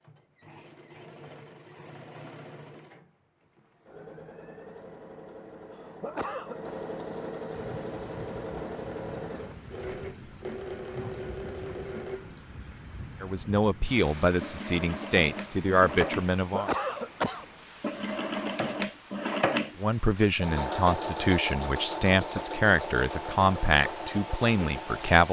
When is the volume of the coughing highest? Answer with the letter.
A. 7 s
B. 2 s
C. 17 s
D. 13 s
C.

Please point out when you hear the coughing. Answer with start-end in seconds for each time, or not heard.
5.7-6.6, 16.4-17.9.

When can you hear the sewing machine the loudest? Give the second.
19 s.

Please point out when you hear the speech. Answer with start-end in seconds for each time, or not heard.
13.2-16.7, 19.8-25.2.